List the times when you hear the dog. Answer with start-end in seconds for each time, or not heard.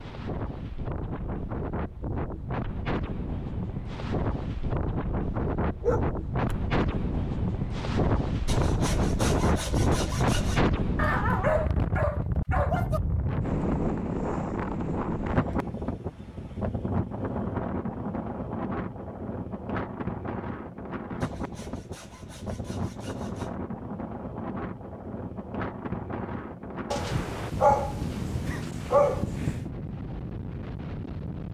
5.8-6.5, 10.9-13.0, 26.9-29.6.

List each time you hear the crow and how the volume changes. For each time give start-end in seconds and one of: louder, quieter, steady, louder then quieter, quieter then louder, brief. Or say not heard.
not heard.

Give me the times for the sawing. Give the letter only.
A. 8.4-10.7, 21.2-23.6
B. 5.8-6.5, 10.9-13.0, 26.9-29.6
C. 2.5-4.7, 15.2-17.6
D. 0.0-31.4
A.